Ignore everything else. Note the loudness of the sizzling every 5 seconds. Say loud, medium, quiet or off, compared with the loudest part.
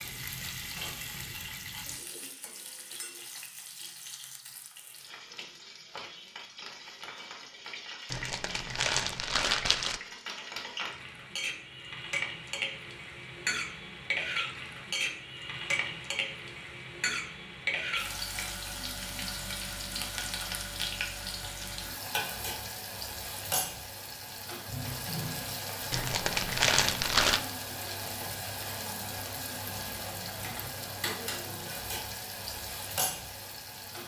medium, medium, loud, loud, loud, loud, loud.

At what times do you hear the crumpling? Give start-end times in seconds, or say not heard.
8.1-10.0, 25.9-27.4.